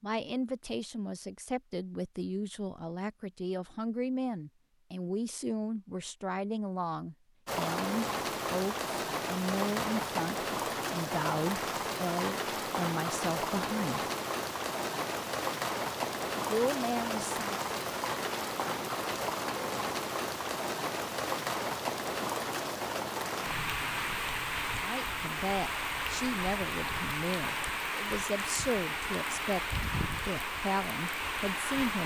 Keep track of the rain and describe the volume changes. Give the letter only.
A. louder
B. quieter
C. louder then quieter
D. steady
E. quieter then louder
D.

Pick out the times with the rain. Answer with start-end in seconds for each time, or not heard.
7.5-32.0.